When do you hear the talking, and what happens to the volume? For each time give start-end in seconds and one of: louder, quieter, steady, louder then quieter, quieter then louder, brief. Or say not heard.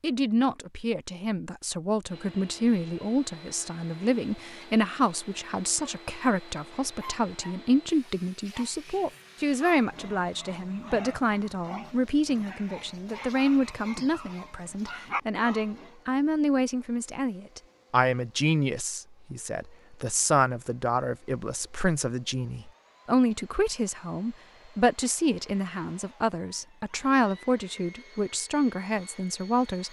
0.0-29.8 steady.